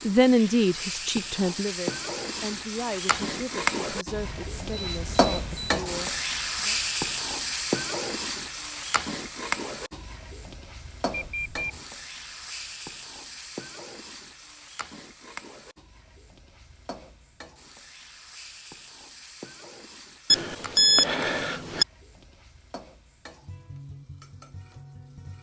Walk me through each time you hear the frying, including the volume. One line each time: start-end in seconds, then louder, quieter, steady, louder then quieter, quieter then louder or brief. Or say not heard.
0.0-25.3 quieter.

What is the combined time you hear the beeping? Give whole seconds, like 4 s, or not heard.
4 s.